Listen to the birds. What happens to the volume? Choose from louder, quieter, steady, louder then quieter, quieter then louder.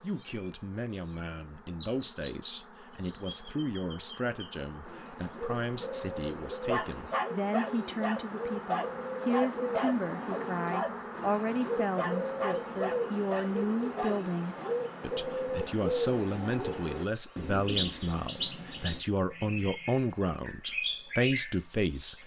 louder.